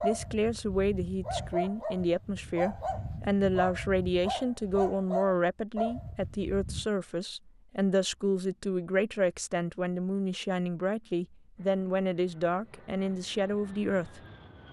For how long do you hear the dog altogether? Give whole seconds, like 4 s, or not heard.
7 s.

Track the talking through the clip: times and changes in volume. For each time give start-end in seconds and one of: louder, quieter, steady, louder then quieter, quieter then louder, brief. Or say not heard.
0.0-14.2 steady.